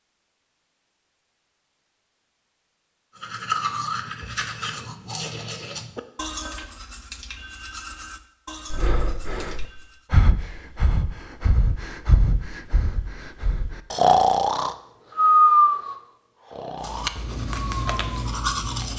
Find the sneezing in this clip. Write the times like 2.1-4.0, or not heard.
not heard.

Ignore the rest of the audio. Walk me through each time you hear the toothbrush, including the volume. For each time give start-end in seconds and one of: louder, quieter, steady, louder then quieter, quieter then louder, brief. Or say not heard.
3.1-10.1 quieter
16.8-18.9 brief.